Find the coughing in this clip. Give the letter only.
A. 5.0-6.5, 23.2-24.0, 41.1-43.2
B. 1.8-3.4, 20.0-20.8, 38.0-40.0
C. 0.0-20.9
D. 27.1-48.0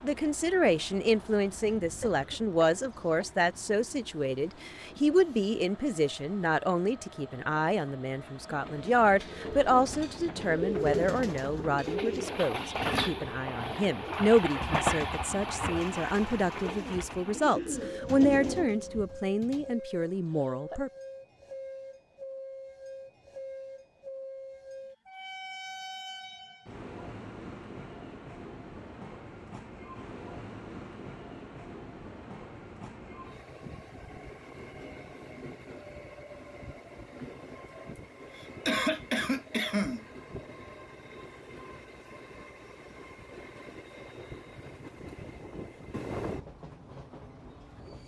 B.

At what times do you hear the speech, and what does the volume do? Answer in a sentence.
The speech can be heard from 0.0 to 20.9 s, at a steady volume.